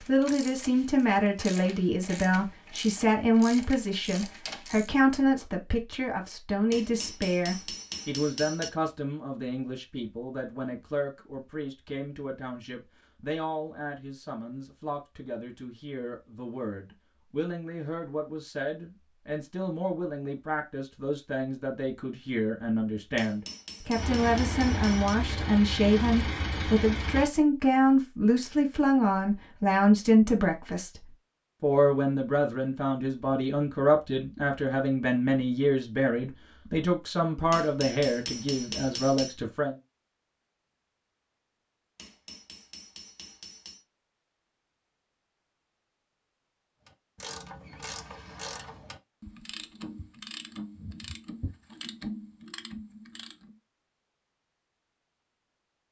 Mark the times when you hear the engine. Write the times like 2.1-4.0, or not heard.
23.9-27.3.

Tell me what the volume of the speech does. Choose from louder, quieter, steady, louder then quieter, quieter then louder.
quieter then louder.